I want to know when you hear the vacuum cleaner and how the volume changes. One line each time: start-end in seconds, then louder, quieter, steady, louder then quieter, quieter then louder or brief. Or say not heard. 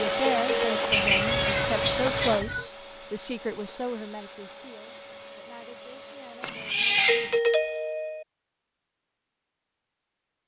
0.0-6.8 quieter.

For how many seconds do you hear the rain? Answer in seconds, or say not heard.
not heard.